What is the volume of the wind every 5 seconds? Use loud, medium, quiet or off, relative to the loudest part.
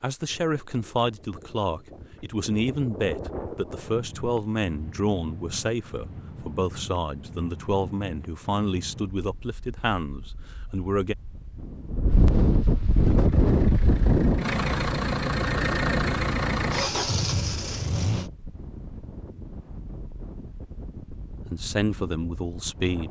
quiet, quiet, loud, quiet, quiet.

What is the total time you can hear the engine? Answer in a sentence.
The engine can be heard for 5 seconds in total.